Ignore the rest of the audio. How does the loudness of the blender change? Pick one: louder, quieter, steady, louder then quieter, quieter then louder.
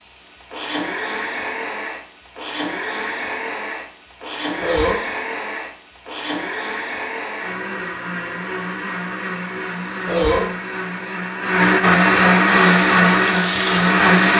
louder.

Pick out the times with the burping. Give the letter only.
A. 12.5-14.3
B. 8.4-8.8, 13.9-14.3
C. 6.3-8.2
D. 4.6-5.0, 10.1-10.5
D.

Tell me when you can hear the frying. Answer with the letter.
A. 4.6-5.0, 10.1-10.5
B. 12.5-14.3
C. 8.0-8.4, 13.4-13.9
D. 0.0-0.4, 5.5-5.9
B.